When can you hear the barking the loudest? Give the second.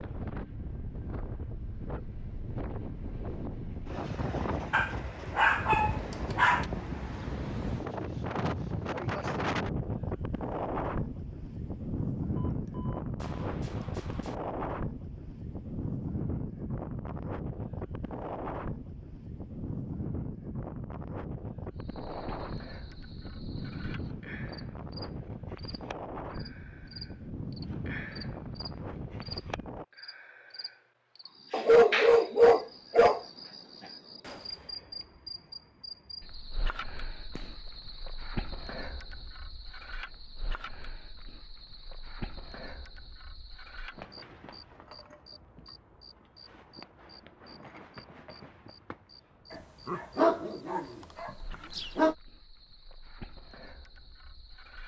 32 s.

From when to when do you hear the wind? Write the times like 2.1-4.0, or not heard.
0.0-29.9.